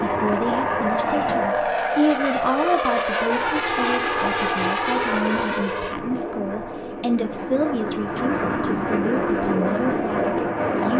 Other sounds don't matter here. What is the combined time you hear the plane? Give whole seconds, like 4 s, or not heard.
11 s.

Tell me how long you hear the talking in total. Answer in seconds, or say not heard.
11 s.